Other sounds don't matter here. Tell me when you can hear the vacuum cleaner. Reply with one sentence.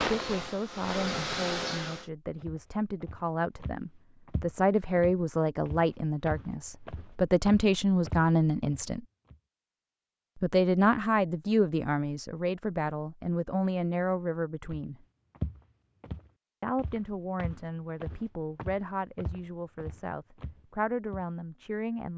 You can hear the vacuum cleaner from 0.0 to 2.1 s.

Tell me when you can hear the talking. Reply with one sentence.
The talking can be heard from 0.0 to 9.0 s, from 10.4 to 14.9 s and from 16.6 to 22.1 s.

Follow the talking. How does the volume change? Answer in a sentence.
The volume of the talking goes up, then down.